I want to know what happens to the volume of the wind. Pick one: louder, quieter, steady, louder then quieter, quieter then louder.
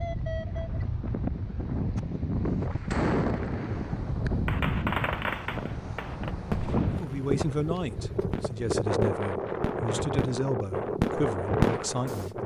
steady.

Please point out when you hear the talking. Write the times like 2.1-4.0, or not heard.
6.9-12.4.